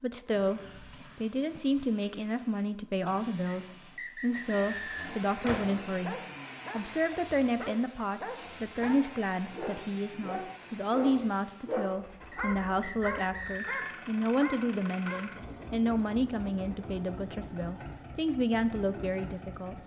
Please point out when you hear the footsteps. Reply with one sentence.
The footsteps can't be heard in this clip.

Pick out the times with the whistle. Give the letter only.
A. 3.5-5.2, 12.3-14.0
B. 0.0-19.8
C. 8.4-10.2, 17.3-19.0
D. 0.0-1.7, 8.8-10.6
A.